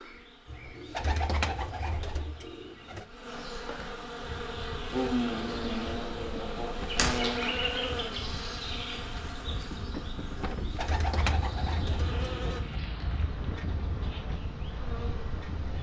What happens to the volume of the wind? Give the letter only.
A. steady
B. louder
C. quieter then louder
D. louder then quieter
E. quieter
B.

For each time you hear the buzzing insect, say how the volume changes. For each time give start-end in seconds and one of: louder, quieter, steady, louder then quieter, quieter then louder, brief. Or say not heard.
0.0-15.7 louder then quieter.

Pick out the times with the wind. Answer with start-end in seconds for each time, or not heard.
4.2-15.7.